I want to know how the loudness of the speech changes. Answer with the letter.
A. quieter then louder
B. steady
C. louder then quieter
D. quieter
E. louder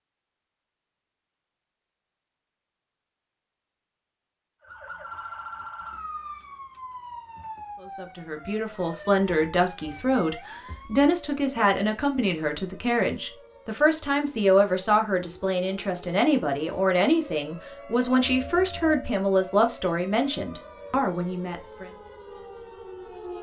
B.